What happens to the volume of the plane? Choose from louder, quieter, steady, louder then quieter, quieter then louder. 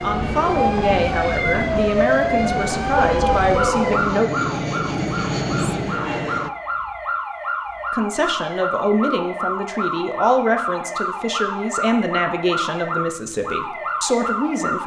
louder.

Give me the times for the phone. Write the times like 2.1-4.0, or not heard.
3.0-4.1.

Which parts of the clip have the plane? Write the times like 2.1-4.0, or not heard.
0.0-6.5.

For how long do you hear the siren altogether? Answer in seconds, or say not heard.
15 s.